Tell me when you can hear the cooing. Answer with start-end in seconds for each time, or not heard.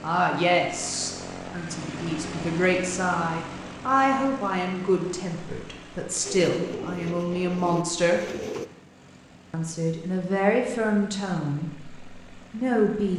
6.2-8.7.